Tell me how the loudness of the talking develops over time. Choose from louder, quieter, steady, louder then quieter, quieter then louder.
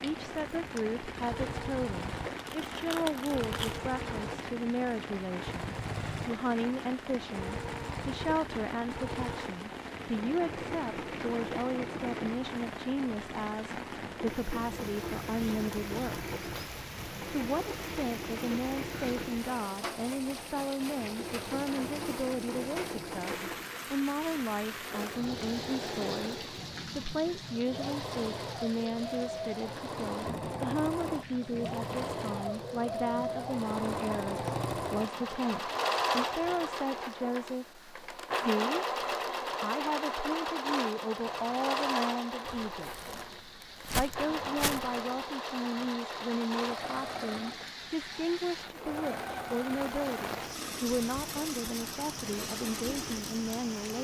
steady.